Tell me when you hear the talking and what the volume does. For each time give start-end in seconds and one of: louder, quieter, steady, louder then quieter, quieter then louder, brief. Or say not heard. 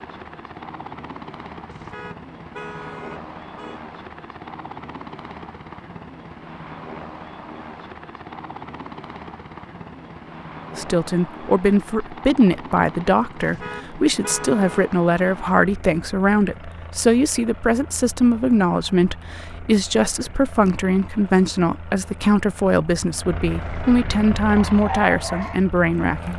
10.8-26.3 steady.